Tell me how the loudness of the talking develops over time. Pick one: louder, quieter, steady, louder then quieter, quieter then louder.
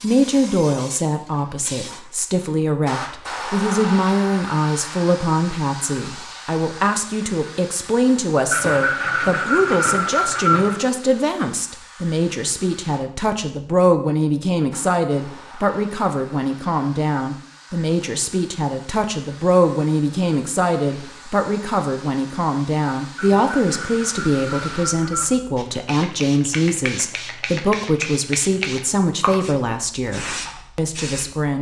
steady.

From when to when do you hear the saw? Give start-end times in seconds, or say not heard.
8.5-10.8, 23.1-25.4.